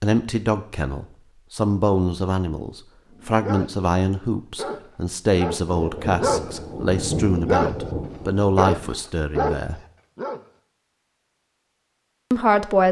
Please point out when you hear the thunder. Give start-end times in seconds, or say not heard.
5.7-9.0.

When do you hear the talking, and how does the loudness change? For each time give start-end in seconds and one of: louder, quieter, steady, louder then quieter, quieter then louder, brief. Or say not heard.
0.0-9.8 steady
12.3-12.8 brief.